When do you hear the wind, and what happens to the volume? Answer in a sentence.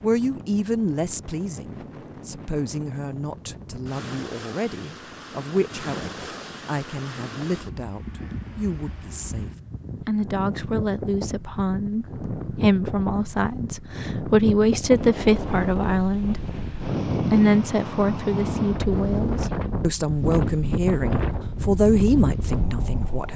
You can hear the wind from 0.0 to 23.3 s, getting louder.